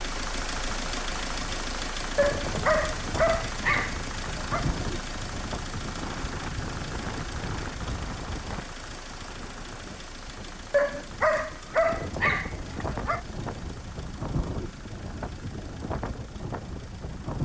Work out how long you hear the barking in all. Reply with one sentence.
You can hear the barking for 5 seconds altogether.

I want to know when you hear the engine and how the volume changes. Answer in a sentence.
The engine can be heard from 0.0 to 17.4 s, getting quieter.